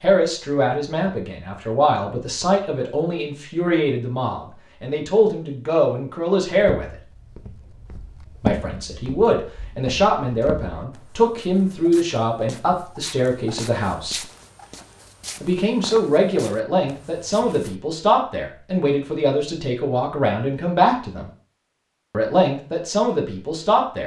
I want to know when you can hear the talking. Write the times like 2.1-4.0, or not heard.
0.0-6.8, 8.4-14.2, 15.4-21.3, 22.1-24.0.